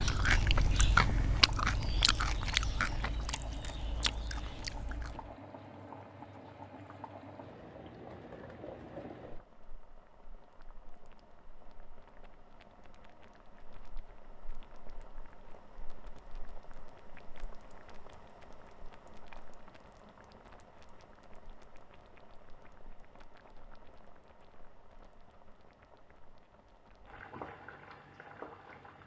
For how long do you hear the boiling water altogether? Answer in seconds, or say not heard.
29 s.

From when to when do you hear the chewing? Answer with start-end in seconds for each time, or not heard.
0.0-5.3.